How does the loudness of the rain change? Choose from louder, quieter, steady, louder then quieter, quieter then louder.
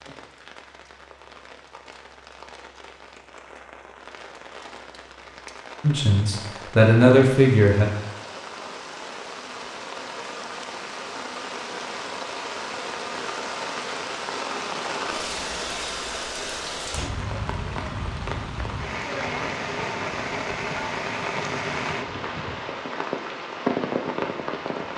louder.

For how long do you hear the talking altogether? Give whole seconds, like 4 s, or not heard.
2 s.